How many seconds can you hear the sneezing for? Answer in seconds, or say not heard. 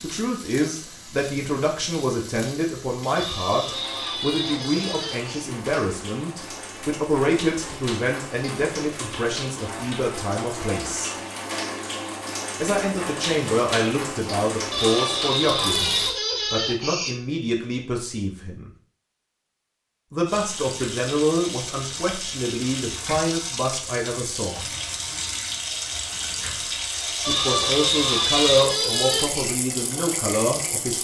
7 s.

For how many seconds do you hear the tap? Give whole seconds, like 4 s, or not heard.
27 s.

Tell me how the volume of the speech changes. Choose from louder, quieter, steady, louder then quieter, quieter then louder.
steady.